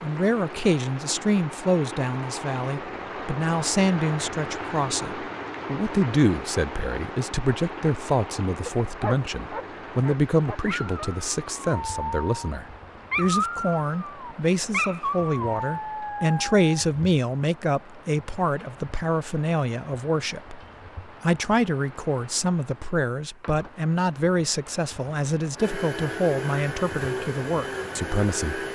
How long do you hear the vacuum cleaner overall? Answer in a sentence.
The vacuum cleaner can be heard for 3 seconds in total.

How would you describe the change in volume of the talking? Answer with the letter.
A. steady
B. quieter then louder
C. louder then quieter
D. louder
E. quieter
A.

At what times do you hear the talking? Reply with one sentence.
You can hear the talking from 0.0 to 28.6 s.